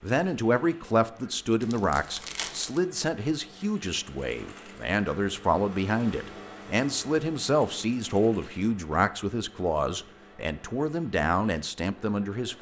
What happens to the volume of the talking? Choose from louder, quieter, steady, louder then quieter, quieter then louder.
steady.